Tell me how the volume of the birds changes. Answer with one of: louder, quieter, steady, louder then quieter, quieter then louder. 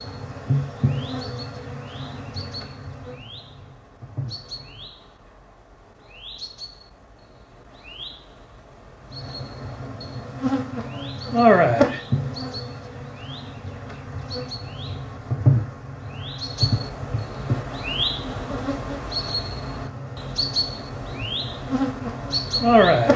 louder.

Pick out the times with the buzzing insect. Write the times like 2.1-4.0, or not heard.
0.0-4.8, 9.1-23.1.